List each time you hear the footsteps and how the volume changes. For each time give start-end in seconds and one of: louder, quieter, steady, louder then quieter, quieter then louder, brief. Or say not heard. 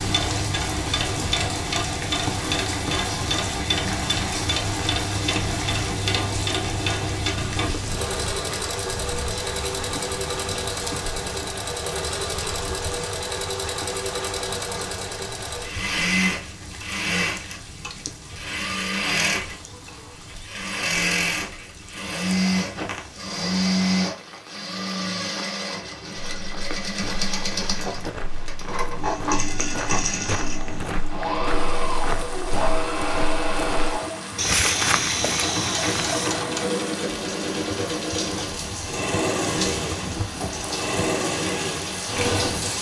26.3-36.4 louder.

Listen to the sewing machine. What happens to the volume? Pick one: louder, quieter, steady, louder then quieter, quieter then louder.
steady.